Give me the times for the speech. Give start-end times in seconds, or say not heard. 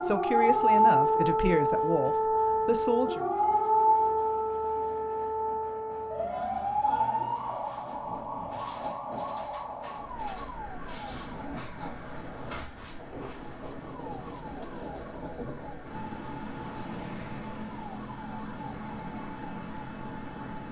0.0-3.2.